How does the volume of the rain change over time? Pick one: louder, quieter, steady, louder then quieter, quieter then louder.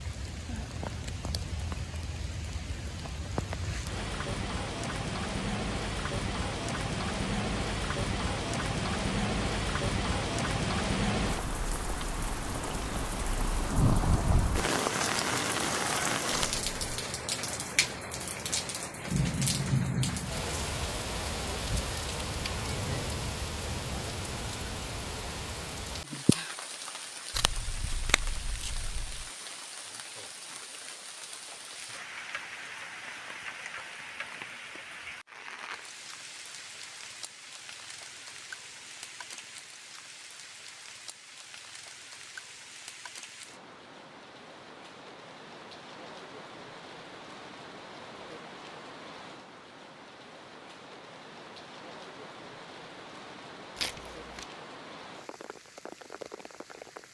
quieter.